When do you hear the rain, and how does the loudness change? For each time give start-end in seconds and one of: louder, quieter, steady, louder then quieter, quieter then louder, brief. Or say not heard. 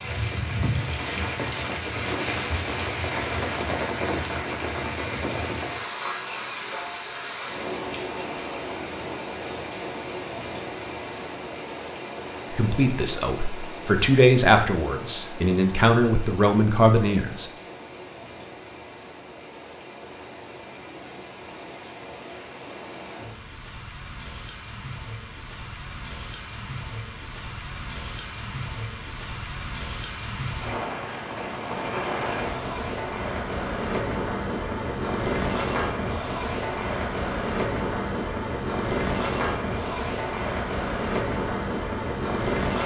0.0-42.8 quieter then louder.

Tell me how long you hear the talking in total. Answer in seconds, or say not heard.
5 s.